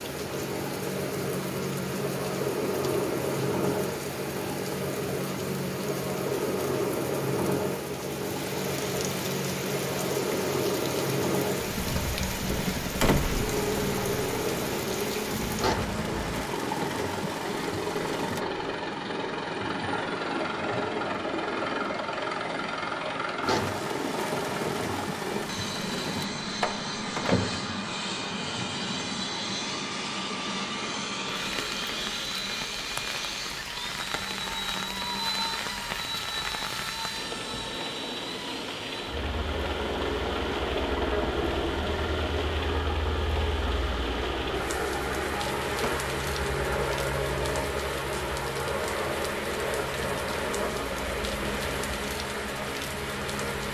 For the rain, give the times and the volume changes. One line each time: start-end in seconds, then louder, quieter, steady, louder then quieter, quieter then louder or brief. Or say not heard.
0.0-53.6 steady.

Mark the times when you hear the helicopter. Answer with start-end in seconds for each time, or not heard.
0.0-53.6.